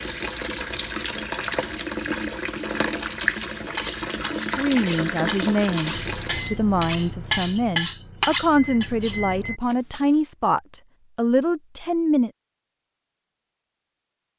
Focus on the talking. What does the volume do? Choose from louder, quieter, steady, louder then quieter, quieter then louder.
steady.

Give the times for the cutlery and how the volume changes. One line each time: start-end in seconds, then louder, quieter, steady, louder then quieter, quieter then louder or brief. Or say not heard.
3.5-10.1 louder then quieter.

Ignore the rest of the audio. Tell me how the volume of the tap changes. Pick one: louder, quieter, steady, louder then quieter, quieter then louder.
steady.